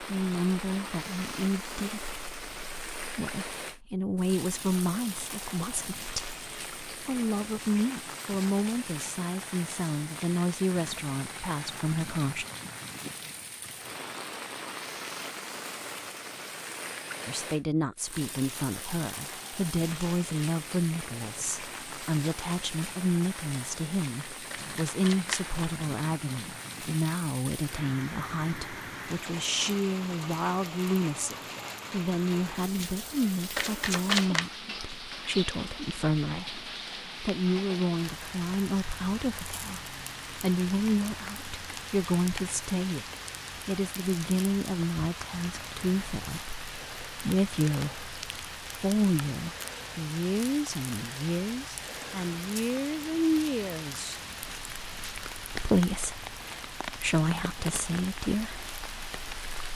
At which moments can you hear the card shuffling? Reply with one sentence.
You can hear the card shuffling from 24.5 to 25.6 s and from 33.5 to 34.5 s.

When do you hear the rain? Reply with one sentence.
You can hear the rain from 0.0 to 59.7 s.